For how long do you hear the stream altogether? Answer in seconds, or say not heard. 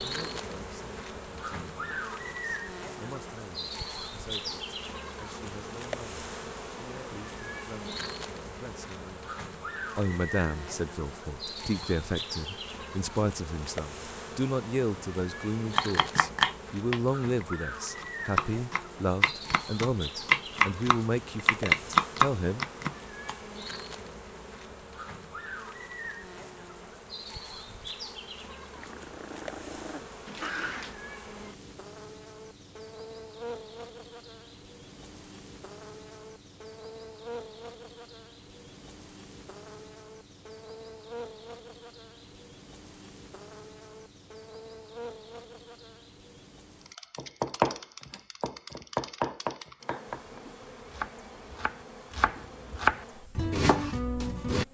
not heard.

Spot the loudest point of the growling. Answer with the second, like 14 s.
31 s.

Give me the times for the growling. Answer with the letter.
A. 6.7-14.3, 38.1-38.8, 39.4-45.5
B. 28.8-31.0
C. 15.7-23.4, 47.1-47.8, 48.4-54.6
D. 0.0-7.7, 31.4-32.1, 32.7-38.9
B.